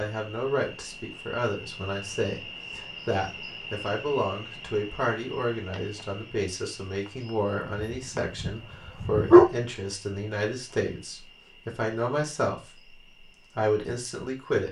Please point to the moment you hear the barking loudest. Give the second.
9 s.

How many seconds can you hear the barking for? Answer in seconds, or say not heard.
2 s.